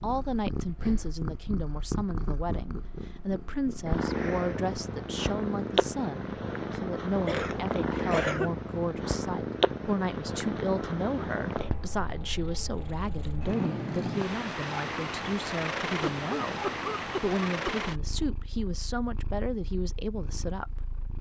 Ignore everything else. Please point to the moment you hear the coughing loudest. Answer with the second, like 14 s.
8 s.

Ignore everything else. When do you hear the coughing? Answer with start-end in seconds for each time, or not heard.
7.2-8.5, 16.0-17.9.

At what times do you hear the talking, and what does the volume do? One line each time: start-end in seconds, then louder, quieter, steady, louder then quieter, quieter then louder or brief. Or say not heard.
0.0-21.1 steady.